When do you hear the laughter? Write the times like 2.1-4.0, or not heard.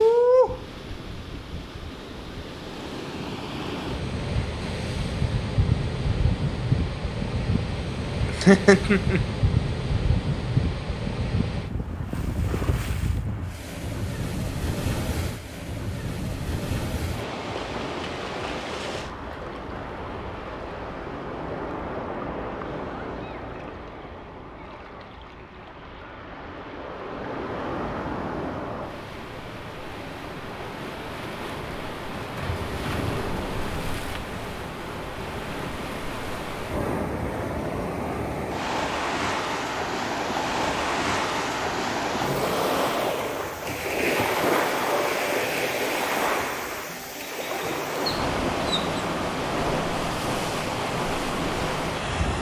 8.2-9.2.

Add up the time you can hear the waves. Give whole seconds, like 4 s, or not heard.
52 s.